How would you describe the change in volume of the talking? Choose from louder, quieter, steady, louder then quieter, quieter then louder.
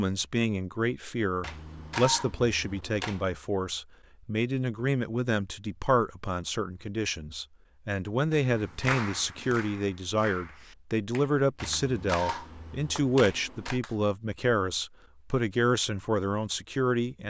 steady.